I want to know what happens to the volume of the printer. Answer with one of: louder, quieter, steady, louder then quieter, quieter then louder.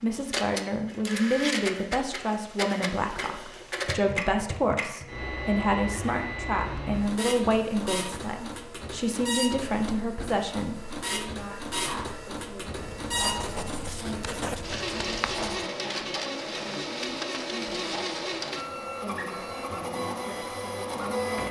steady.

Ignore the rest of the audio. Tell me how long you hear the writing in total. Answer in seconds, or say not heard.
3 s.